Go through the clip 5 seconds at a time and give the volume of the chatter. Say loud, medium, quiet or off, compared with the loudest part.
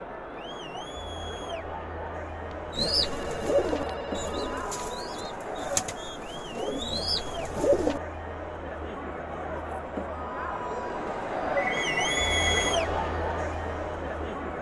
medium, medium, loud.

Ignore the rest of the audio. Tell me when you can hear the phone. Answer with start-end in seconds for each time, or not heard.
2.5-4.7, 11.6-12.6.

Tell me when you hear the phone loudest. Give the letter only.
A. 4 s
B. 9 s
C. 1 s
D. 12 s
D.